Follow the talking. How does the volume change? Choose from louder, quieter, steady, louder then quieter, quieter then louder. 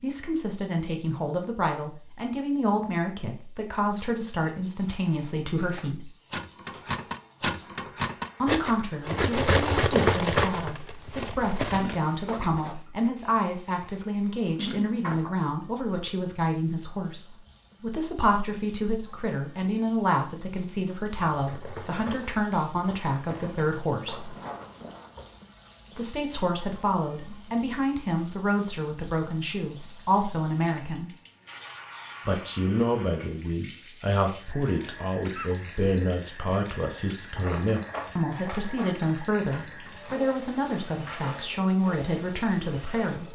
steady.